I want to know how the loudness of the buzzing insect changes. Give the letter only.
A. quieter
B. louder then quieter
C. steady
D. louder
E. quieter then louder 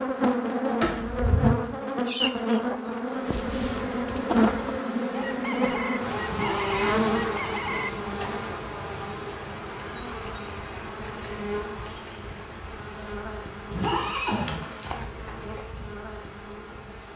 A.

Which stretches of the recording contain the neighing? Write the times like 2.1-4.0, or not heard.
0.8-1.6, 6.2-7.2, 13.7-14.9.